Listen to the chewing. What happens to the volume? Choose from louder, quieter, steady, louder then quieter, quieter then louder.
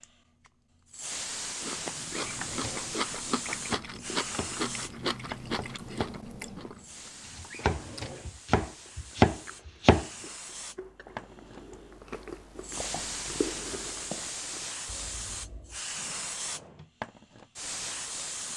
quieter then louder.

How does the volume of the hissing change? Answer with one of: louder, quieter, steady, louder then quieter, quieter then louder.
quieter then louder.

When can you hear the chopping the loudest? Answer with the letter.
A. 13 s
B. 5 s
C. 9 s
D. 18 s
C.